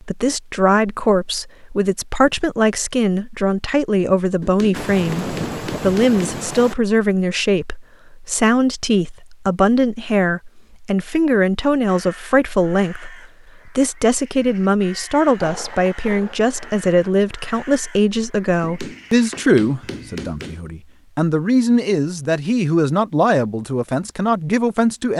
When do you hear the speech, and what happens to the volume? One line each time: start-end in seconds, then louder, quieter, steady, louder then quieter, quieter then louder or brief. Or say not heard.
0.1-25.1 steady.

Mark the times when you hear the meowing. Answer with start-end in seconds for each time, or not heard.
not heard.